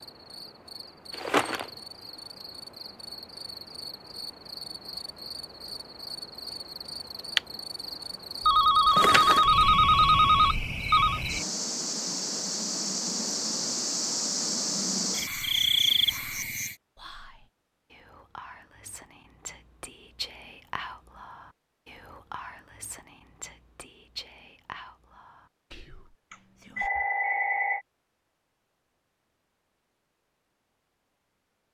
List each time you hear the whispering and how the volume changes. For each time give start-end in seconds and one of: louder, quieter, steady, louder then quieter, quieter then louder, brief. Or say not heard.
15.2-26.9 louder then quieter.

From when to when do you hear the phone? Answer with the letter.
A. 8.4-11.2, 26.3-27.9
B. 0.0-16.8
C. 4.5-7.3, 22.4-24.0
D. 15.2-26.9
A.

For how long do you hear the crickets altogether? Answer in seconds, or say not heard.
17 s.